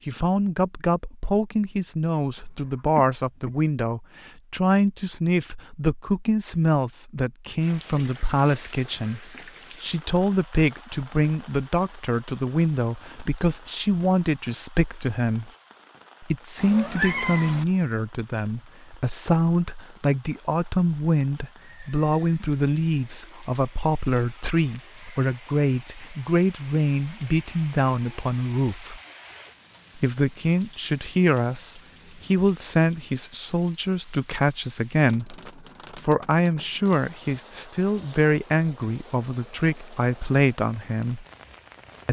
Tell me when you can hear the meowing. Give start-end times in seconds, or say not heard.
16.6-17.6.